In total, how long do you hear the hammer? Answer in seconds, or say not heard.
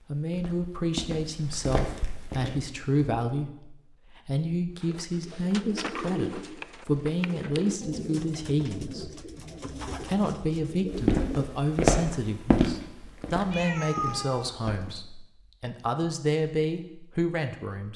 not heard.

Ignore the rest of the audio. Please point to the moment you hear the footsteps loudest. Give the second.
12 s.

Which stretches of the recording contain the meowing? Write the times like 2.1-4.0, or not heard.
13.5-15.0.